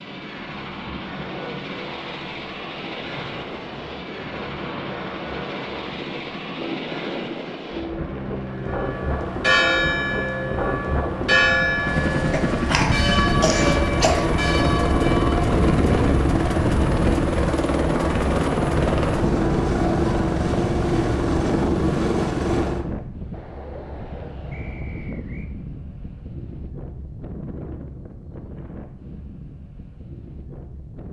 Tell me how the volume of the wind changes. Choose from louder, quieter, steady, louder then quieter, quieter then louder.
louder then quieter.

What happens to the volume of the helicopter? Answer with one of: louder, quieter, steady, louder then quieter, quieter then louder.
louder.